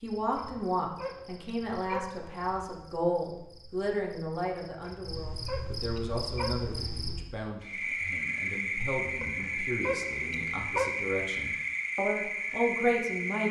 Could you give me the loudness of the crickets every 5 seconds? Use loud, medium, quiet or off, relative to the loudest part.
quiet, loud, loud.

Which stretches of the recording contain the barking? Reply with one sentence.
The barking can be heard from 0.3 to 2.7 s, from 4.8 to 7.2 s and from 9.2 to 10.9 s.